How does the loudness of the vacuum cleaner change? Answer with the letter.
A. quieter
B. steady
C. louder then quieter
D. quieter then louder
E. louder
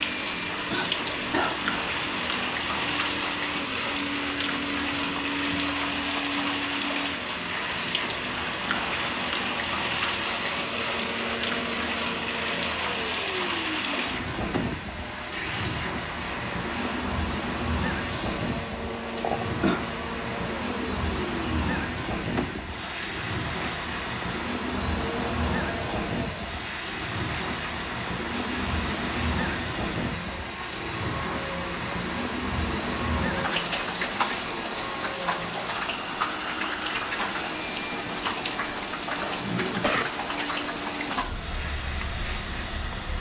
B.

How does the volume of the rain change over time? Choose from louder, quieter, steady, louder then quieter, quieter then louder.
steady.